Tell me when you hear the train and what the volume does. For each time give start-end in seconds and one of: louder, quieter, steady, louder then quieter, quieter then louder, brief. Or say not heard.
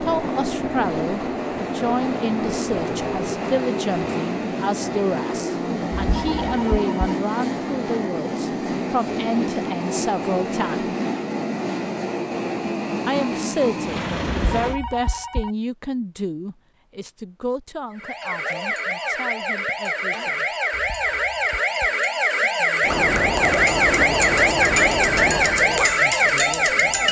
0.0-14.8 steady
22.8-27.0 quieter.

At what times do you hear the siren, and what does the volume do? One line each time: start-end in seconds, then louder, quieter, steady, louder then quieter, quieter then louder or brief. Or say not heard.
17.9-27.0 louder.